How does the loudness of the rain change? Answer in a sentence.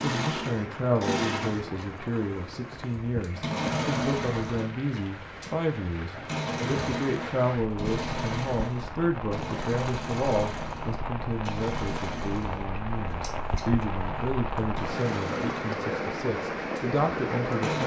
The volume of the rain goes up.